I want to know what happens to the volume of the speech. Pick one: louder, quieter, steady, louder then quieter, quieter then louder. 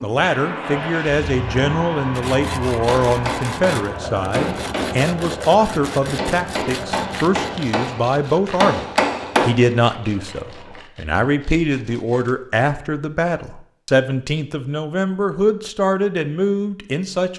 steady.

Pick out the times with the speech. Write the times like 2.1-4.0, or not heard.
0.0-17.3.